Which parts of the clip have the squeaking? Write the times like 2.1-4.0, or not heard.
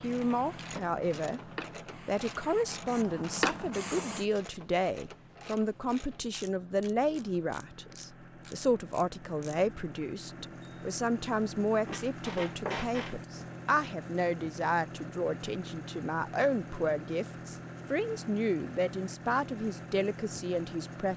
11.8-13.2.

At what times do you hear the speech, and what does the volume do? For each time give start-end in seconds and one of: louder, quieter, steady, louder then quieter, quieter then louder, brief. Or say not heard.
0.0-1.4 brief
2.0-21.1 steady.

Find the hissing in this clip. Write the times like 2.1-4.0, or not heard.
0.0-4.2.